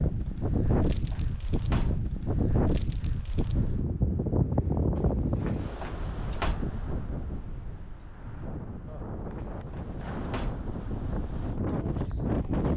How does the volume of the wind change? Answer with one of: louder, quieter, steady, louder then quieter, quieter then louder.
quieter then louder.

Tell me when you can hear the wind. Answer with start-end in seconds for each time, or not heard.
0.0-12.7.